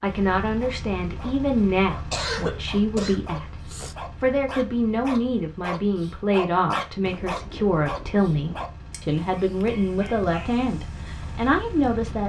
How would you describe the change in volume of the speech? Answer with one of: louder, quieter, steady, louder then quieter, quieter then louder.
steady.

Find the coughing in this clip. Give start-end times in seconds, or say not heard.
2.1-4.0.